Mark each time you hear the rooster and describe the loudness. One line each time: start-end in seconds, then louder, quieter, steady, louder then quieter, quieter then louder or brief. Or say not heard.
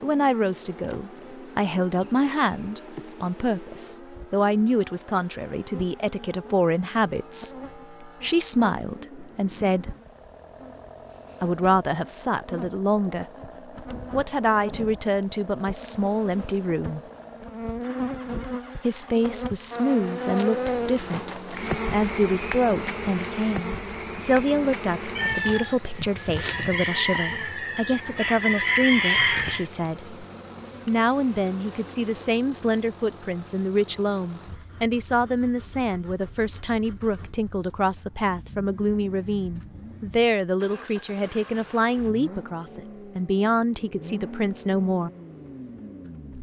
25.1-29.6 louder.